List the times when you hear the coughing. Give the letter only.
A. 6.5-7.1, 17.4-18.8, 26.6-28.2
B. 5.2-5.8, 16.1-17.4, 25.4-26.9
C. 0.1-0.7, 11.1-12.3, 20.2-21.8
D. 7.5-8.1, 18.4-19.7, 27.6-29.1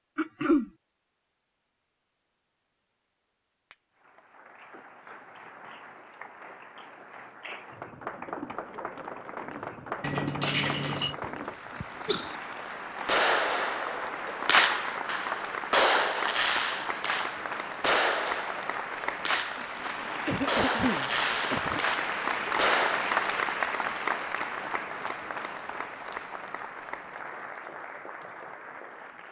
C.